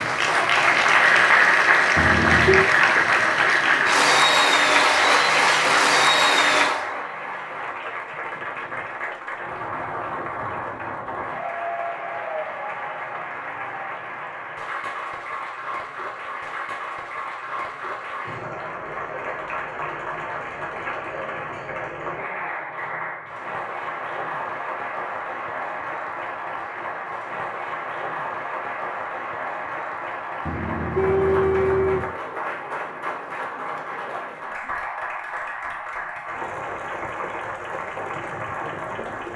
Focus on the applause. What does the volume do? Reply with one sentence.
The loudness of the applause goes down.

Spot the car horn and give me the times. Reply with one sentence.
The car horn can be heard from 1.9 to 2.7 s and from 30.4 to 32.1 s.